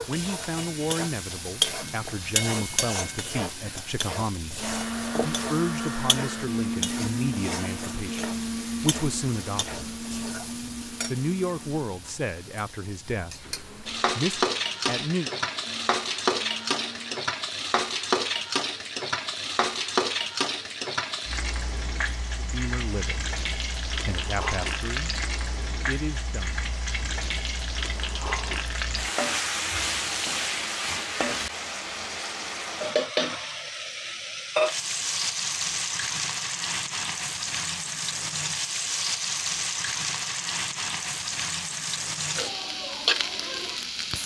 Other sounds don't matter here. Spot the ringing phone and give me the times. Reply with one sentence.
You can't hear the ringing phone here.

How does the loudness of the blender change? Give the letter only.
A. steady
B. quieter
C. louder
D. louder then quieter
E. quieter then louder
B.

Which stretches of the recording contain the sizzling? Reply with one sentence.
You can hear the sizzling from 0.0 to 44.2 s.